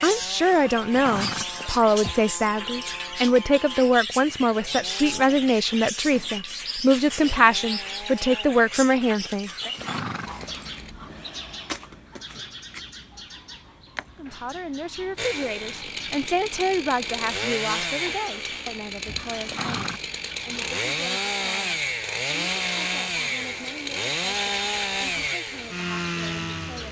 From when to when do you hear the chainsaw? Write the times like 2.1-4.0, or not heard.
0.0-10.9, 15.2-26.8.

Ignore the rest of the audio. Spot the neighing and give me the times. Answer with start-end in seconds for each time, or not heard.
0.8-2.3, 9.4-10.7, 19.3-20.0.